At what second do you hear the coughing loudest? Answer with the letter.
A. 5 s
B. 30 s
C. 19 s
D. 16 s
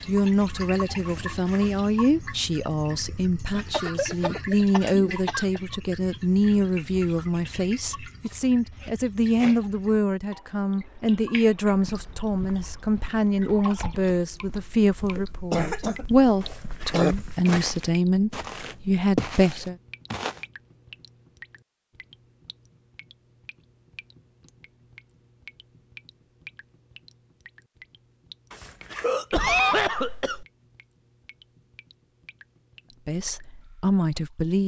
B.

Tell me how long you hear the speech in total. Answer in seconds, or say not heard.
21 s.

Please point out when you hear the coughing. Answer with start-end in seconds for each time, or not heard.
3.5-5.5, 15.2-17.1, 29.0-30.4.